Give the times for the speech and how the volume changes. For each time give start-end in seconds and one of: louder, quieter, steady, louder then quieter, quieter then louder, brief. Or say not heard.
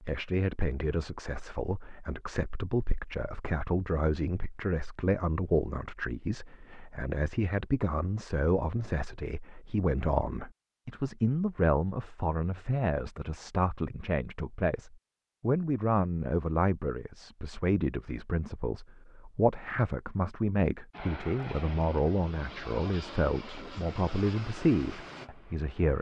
0.0-25.9 steady.